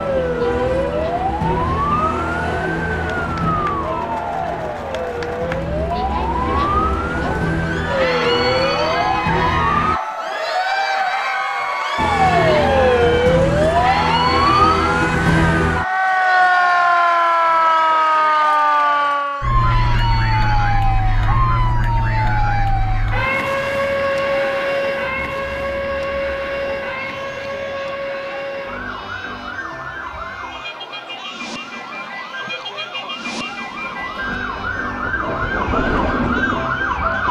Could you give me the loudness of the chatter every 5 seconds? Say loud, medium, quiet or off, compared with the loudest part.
medium, loud, loud, medium, medium, quiet, quiet, quiet.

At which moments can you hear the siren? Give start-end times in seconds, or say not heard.
0.0-10.0, 11.9-37.2.